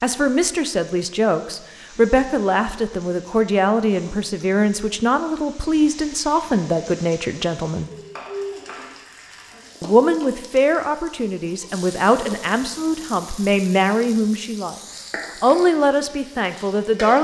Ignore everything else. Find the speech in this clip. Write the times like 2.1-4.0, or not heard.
0.0-7.9, 9.8-14.8, 15.4-17.1.